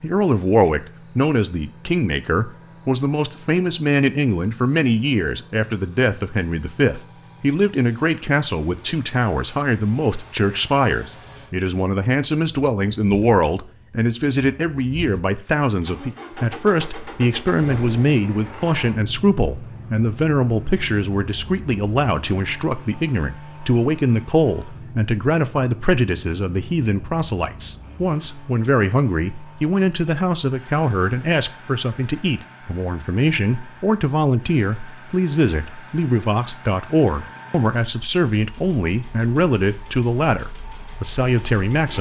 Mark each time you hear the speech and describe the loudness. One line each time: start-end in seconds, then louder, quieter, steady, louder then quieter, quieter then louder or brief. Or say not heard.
0.0-41.9 steady.